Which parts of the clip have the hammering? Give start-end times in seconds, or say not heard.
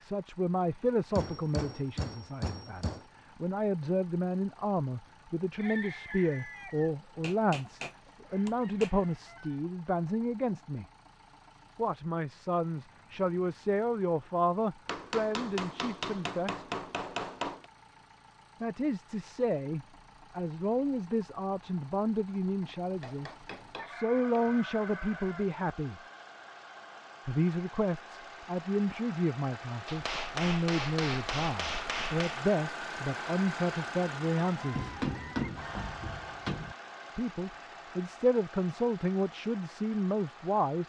1.1-3.0, 7.2-8.9, 14.8-17.6, 22.6-24.6, 29.9-32.4, 34.8-36.8.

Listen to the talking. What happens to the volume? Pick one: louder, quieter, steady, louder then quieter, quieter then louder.
steady.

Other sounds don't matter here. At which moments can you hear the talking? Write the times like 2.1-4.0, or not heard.
0.0-10.8, 11.8-16.6, 18.6-26.0, 27.2-35.0, 37.1-40.8.